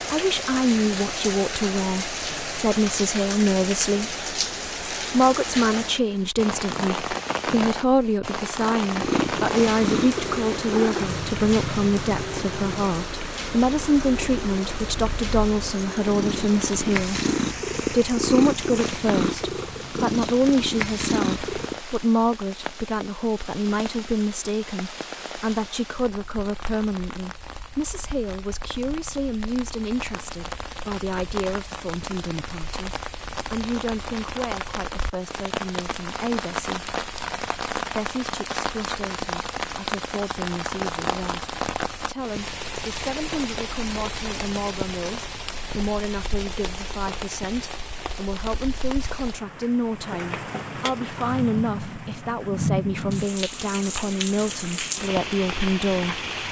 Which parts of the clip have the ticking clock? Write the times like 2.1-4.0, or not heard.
not heard.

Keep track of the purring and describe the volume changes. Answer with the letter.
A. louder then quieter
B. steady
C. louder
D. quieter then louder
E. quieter
D.